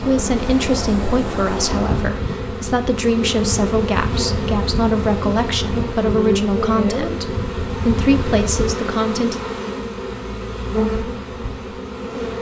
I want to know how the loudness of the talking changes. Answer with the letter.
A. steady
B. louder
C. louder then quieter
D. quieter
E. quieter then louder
A.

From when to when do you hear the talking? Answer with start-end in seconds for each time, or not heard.
0.0-9.4.